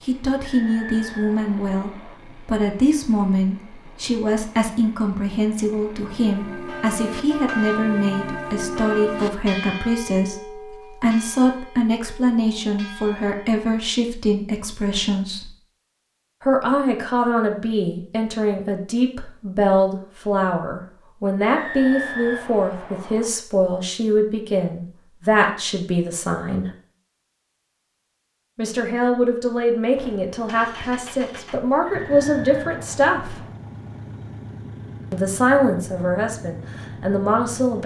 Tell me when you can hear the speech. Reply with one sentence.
The speech can be heard from 0.0 to 15.5 s, from 16.4 to 26.7 s, from 28.6 to 33.4 s and from 35.1 to 37.8 s.